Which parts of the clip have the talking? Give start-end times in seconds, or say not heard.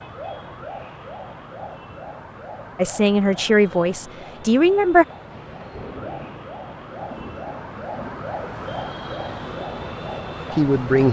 2.8-5.0, 10.5-11.0.